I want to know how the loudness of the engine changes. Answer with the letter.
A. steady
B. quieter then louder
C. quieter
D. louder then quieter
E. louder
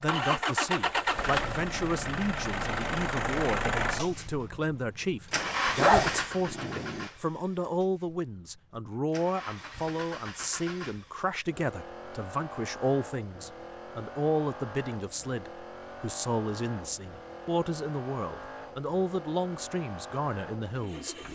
C.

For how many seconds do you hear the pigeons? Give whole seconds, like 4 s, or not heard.
not heard.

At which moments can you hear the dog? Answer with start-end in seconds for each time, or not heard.
5.8-7.1.